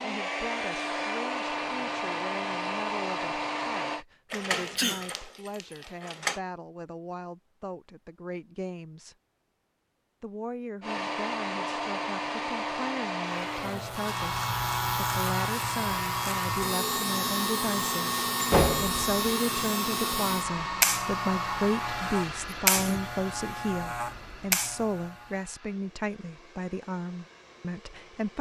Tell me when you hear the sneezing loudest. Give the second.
5 s.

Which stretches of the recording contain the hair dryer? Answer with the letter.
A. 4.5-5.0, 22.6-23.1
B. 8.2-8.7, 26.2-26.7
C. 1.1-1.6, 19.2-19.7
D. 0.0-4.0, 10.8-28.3
D.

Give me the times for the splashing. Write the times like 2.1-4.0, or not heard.
not heard.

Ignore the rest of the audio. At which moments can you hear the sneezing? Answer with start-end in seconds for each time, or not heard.
4.5-5.0, 22.6-23.1.